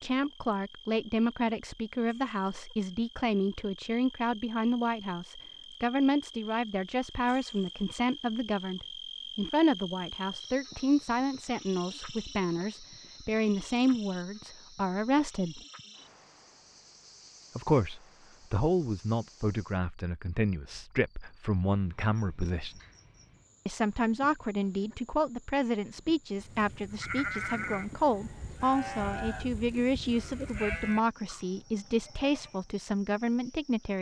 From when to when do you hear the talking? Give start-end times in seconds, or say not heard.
0.0-15.6, 17.6-22.8, 23.6-33.9.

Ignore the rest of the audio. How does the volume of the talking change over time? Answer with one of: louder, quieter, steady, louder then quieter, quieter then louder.
steady.